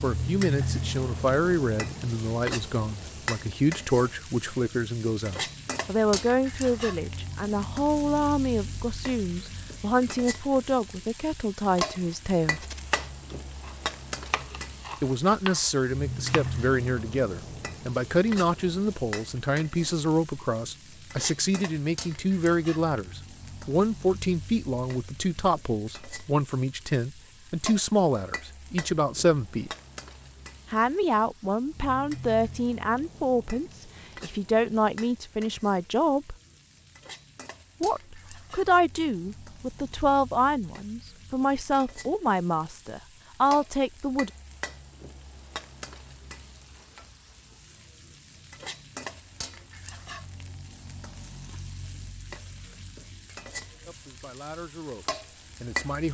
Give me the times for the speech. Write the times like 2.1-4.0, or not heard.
0.0-12.7, 15.0-29.7, 30.7-36.4, 37.8-44.3, 53.9-56.0.